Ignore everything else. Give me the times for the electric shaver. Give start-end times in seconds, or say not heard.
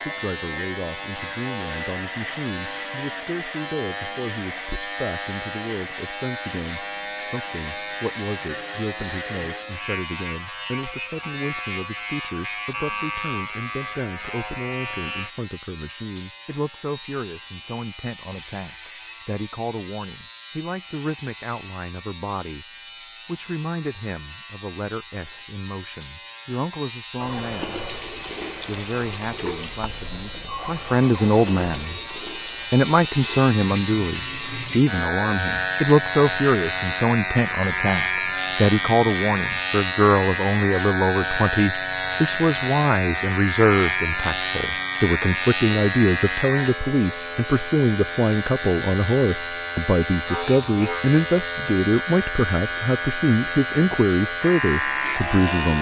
0.0-55.7.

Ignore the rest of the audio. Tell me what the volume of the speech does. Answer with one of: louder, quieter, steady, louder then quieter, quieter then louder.
louder.